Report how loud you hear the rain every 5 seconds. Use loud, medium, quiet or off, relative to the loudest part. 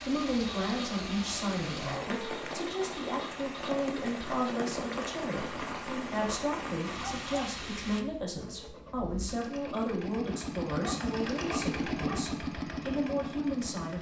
loud, loud, off.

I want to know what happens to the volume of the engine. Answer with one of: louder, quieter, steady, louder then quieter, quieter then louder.
louder.